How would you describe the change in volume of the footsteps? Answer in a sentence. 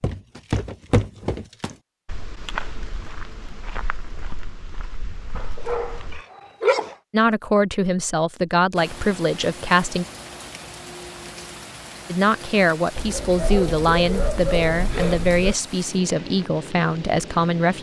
The loudness of the footsteps goes down.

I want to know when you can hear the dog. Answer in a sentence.
The dog can be heard from 5.3 to 7.0 s and from 12.9 to 15.6 s.